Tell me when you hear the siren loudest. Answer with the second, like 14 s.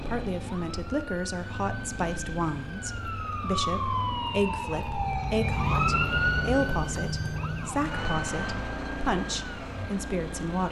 6 s.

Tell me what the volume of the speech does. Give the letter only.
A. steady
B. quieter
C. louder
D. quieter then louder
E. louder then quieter
A.